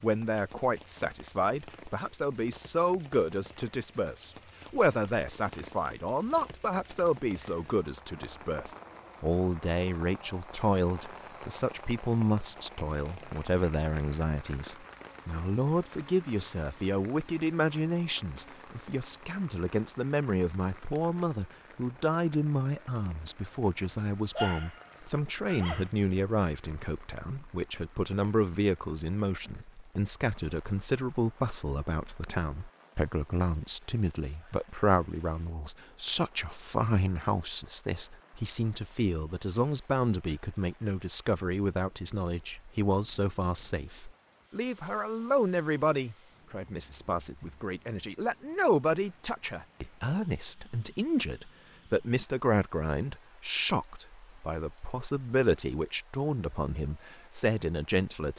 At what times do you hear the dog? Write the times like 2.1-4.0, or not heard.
24.4-25.9.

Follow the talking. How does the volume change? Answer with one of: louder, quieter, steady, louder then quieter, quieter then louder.
steady.